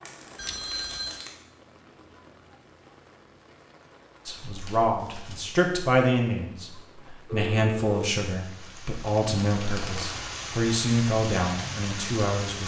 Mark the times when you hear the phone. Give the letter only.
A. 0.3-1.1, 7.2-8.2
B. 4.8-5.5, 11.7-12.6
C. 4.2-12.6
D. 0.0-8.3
A.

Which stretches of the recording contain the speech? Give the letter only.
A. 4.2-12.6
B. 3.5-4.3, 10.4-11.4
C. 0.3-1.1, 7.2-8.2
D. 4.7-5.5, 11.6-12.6
A.